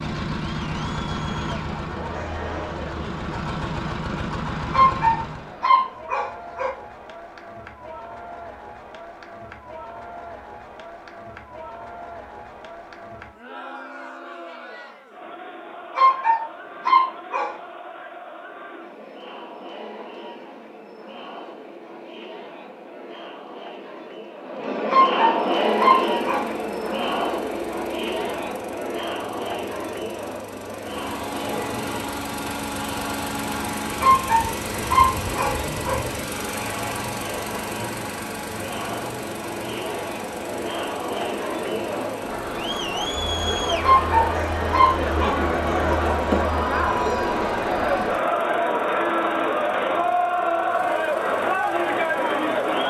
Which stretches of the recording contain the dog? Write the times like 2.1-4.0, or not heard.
4.7-6.7, 15.9-17.6, 24.9-26.5, 34.0-36.0, 43.8-45.4.